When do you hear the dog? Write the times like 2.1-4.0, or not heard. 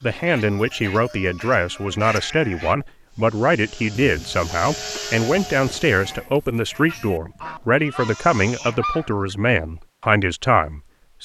not heard.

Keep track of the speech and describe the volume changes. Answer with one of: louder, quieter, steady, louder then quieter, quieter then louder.
steady.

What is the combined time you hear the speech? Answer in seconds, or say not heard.
11 s.